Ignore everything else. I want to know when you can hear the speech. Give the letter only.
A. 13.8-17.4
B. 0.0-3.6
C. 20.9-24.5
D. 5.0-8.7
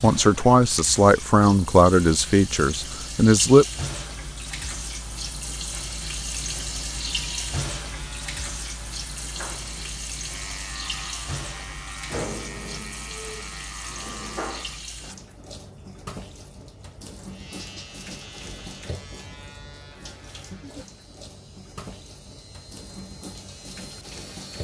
B.